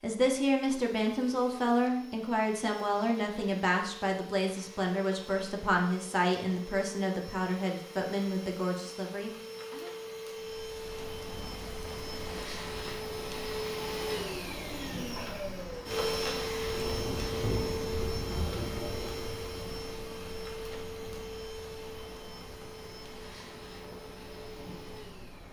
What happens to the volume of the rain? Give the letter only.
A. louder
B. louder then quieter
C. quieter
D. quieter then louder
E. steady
B.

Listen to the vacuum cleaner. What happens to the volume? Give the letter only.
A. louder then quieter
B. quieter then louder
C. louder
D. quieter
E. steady
A.